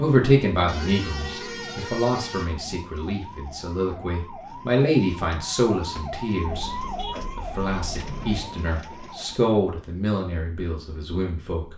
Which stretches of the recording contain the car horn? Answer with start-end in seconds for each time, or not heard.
0.7-2.5, 6.4-8.4.